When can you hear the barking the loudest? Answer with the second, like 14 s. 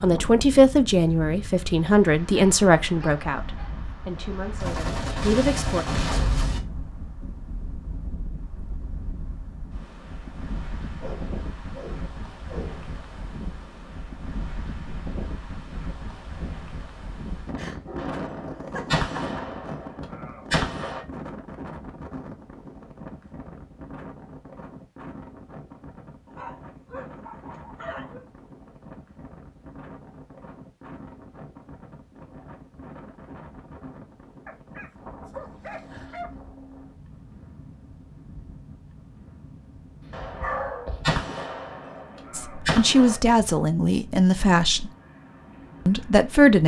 41 s.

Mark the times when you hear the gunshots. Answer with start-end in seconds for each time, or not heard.
4.6-6.6, 17.9-21.1, 40.1-43.1.